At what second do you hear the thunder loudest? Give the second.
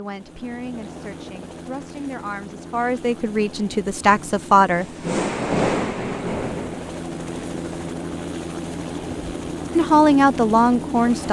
6 s.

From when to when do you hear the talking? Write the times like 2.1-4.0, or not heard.
0.0-4.8, 9.7-11.2.